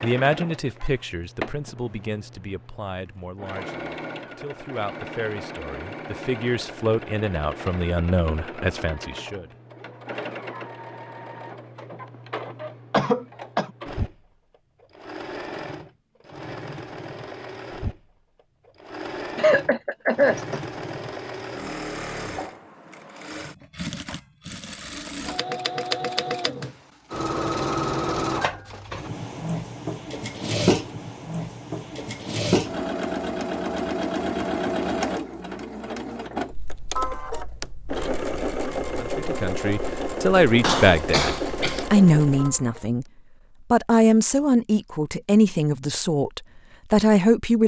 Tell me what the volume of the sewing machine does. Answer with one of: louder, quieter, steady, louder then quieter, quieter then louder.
louder.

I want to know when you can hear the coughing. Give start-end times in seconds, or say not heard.
12.9-13.7, 19.4-20.6, 40.6-41.9.